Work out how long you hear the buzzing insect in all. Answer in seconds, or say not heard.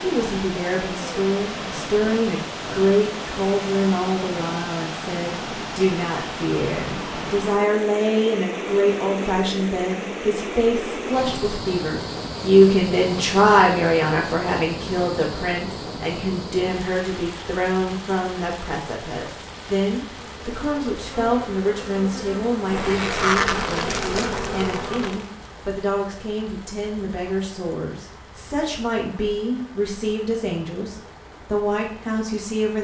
5 s.